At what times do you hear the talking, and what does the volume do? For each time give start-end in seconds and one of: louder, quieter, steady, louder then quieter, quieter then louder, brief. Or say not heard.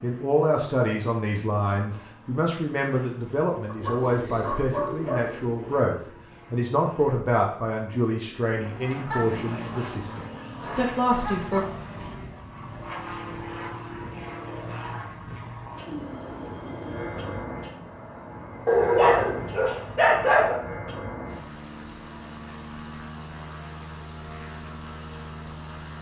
0.0-11.7 steady.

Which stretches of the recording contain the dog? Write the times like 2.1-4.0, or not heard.
3.6-5.2, 9.1-11.8, 18.6-20.6.